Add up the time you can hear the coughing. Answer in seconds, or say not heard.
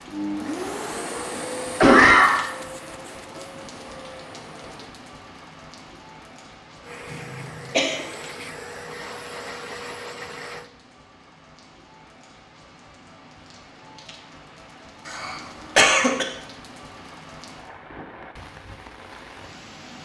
3 s.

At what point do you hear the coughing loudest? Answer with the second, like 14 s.
2 s.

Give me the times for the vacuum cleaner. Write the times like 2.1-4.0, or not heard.
0.1-5.0, 6.8-10.7.